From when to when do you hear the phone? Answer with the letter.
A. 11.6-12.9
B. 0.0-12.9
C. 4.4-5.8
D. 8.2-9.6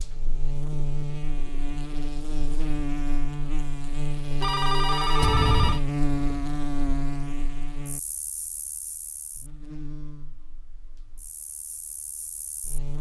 C.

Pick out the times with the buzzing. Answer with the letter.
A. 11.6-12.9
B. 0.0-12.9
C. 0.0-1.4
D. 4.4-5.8
B.